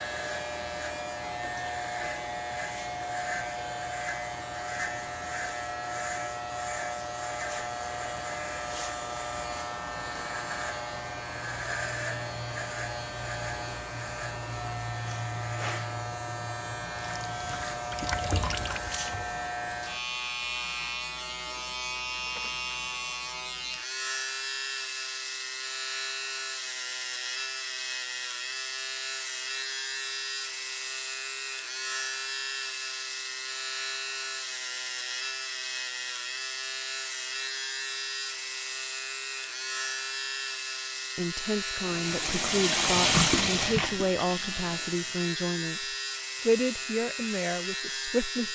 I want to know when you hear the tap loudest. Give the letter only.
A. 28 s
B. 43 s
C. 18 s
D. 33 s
B.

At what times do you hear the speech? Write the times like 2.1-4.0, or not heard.
41.1-48.4.